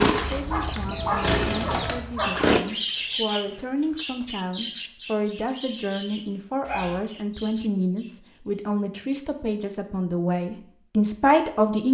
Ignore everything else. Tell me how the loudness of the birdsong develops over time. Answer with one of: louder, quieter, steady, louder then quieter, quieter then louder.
quieter.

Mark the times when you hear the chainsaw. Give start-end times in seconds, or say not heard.
0.0-2.6.